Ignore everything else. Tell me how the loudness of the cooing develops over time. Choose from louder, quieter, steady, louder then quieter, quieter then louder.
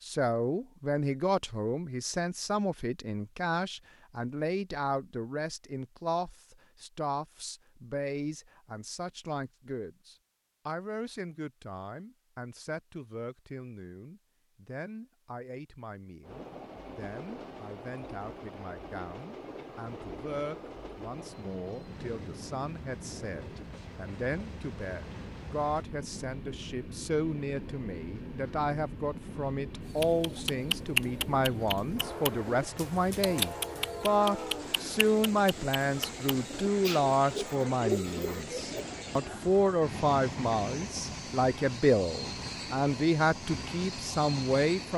quieter then louder.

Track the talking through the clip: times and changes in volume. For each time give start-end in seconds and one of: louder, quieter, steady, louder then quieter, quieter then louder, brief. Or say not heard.
0.0-44.9 quieter then louder.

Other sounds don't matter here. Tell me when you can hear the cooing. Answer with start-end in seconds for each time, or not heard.
29.9-38.9.